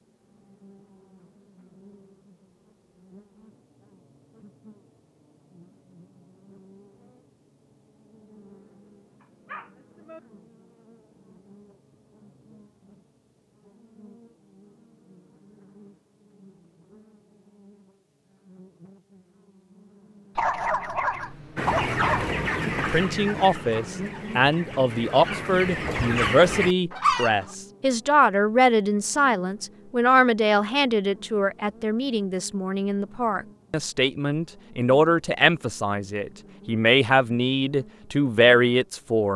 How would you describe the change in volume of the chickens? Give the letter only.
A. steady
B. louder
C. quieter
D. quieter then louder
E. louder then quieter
D.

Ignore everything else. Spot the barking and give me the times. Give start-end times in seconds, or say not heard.
9.2-10.2, 20.4-22.3.